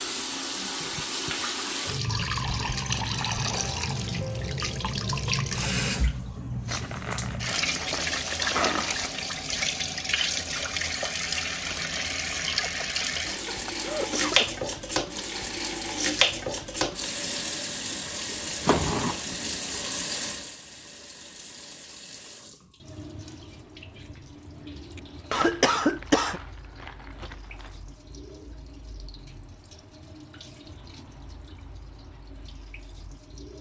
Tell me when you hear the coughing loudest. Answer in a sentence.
The volume of the coughing peaks at 26 seconds.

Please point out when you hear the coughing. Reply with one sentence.
The coughing can be heard from 0.7 to 1.4 s, from 12.5 to 14.5 s and from 24.9 to 26.4 s.